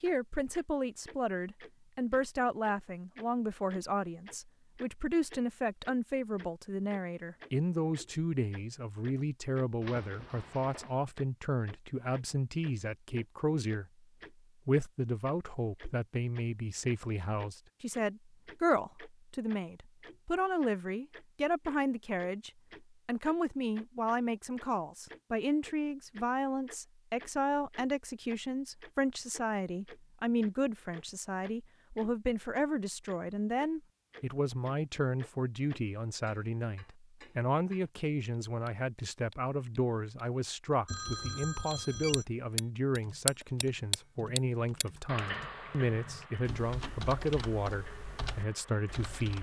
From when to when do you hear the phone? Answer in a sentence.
The phone can be heard from 9.8 to 10.9 s and from 40.9 to 42.2 s.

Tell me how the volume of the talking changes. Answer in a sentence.
The loudness of the talking stays about the same.